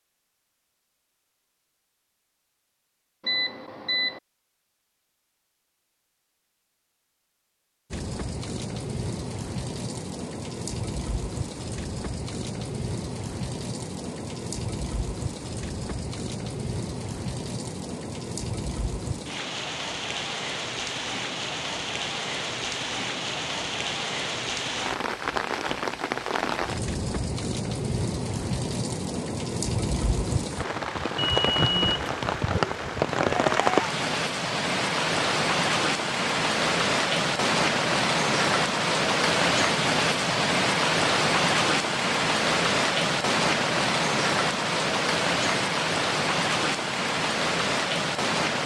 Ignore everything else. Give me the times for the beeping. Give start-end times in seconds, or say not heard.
3.2-4.2, 31.3-32.1.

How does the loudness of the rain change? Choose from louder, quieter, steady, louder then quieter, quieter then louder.
louder.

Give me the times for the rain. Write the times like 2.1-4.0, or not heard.
7.9-48.6.